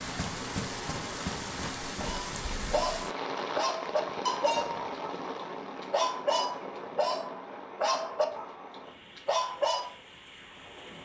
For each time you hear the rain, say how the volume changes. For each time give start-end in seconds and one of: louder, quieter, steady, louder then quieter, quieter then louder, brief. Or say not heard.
0.0-10.9 quieter.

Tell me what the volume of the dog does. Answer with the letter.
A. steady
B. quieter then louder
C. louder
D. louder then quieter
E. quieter
A.